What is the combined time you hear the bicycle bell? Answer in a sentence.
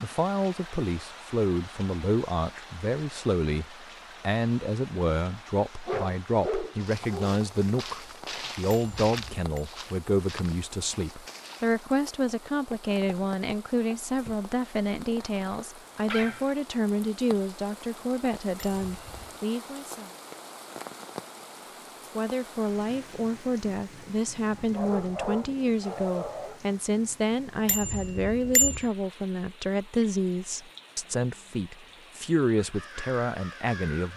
The bicycle bell can be heard for 3 seconds in total.